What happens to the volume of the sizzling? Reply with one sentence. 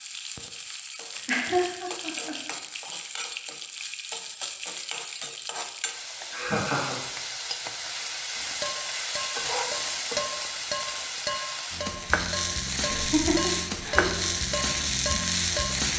The volume of the sizzling goes up.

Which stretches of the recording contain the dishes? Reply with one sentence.
The dishes can be heard from 8.6 to 15.7 s.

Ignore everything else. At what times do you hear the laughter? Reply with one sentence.
You can hear the laughter from 1.2 to 2.4 s, from 6.3 to 7.0 s and from 12.8 to 14.2 s.